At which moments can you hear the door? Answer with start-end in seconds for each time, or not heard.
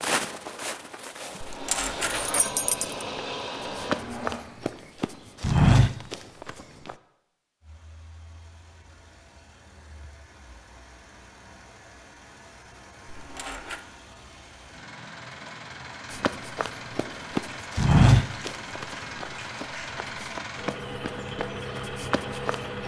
not heard.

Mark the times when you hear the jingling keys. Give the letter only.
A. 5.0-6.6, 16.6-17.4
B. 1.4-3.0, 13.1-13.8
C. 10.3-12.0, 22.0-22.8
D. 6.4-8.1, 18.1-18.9
B.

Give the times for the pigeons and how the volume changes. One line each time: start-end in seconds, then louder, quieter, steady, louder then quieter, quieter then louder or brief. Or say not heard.
not heard.